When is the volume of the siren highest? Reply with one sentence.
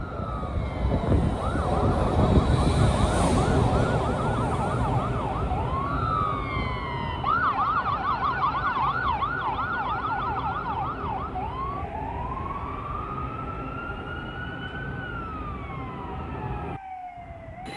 The loudest moment of the siren is at 8 seconds.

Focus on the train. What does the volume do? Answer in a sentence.
The loudness of the train goes down.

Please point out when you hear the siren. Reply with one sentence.
The siren can be heard from 0.0 to 17.7 s.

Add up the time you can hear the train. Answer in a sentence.
The train can be heard for 18 seconds in total.